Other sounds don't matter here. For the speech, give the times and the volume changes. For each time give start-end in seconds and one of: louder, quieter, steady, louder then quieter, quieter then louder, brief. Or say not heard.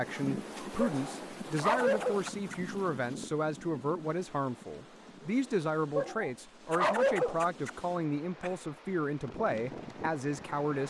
0.0-10.8 steady.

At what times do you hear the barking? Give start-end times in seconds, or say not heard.
0.8-2.5, 6.0-7.7.